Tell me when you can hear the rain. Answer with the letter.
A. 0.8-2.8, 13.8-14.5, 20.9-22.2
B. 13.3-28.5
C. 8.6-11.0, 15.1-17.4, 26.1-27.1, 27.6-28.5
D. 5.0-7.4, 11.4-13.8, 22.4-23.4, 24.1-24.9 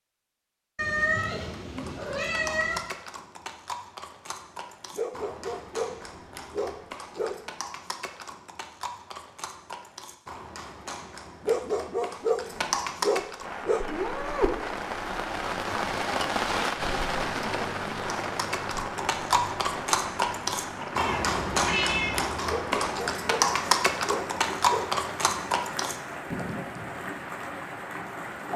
B.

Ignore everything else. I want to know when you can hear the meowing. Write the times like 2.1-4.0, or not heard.
0.8-2.8, 13.8-14.5, 20.9-22.2.